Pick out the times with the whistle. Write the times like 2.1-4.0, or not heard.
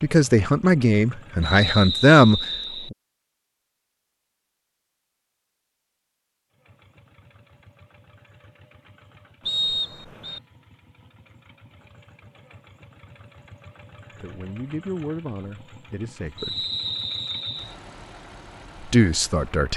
1.4-2.9, 9.4-10.4, 16.4-17.8.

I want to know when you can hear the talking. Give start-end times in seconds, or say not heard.
0.0-3.0, 14.2-16.6, 18.9-19.7.